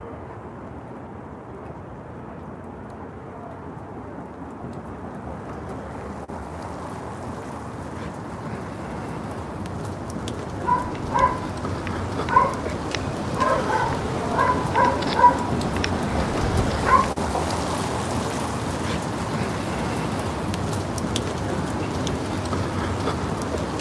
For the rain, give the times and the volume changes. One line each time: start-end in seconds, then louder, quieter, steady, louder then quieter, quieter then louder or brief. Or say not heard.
0.0-23.7 louder.